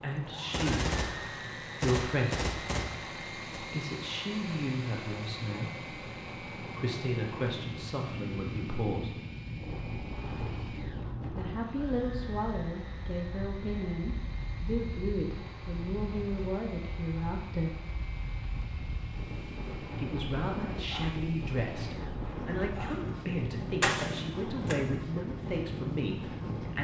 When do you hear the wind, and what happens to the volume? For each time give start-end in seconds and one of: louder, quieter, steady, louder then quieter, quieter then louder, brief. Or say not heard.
0.0-26.7 louder.